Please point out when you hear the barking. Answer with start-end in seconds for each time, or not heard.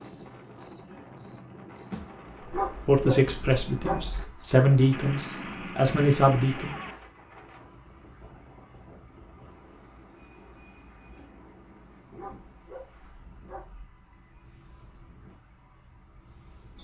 2.5-4.2, 12.2-13.9.